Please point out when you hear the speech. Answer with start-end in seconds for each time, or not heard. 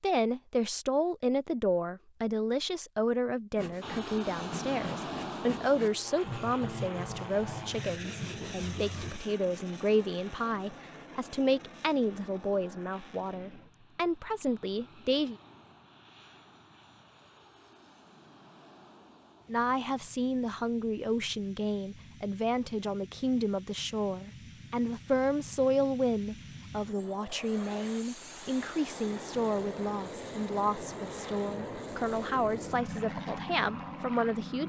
0.0-15.3, 19.4-34.6.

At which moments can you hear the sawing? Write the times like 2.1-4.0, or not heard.
3.5-9.2.